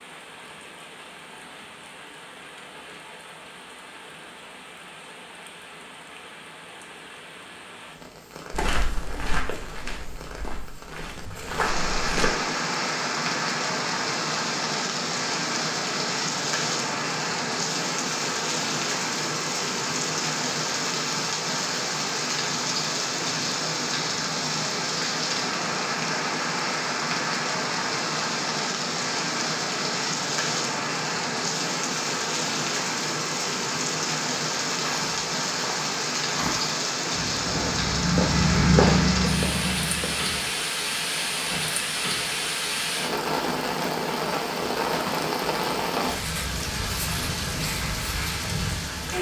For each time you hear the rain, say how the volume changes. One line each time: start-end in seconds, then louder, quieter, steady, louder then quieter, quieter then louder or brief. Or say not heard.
0.0-49.1 louder.